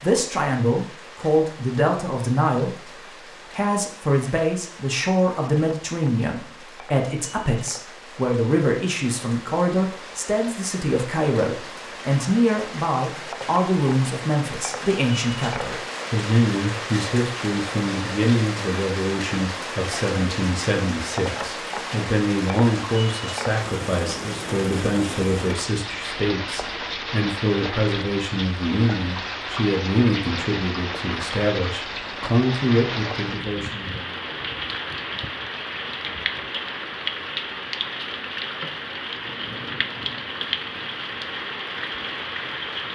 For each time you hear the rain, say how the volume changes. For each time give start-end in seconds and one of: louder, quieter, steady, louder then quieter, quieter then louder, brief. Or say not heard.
0.0-42.8 louder.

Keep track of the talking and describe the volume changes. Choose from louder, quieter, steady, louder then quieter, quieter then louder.
steady.